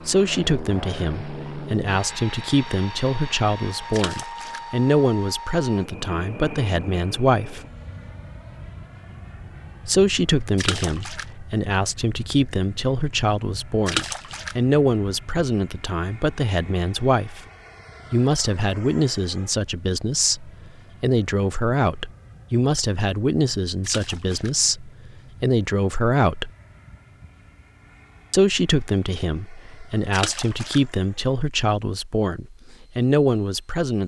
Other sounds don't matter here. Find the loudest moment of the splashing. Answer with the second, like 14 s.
14 s.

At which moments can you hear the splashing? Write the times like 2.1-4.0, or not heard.
3.9-4.6, 10.6-11.2, 13.8-14.6, 23.8-24.5, 30.1-30.8.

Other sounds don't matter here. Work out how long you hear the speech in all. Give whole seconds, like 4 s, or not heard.
29 s.